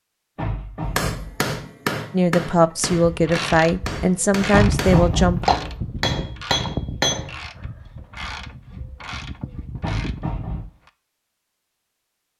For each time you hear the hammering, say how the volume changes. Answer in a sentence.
You can hear the hammering from 0.9 to 7.4 s, getting quieter then louder.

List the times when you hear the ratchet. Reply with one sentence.
You can hear the ratchet from 2.6 to 10.9 s.